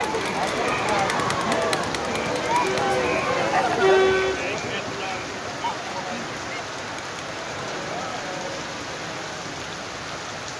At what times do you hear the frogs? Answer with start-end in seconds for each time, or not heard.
not heard.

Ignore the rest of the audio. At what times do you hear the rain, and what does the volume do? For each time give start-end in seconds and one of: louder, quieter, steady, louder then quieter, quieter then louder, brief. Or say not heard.
0.0-10.5 steady.